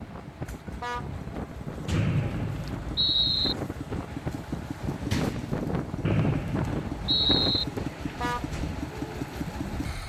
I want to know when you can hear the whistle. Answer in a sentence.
The whistle can be heard from 1.9 to 3.5 s and from 6.0 to 7.7 s.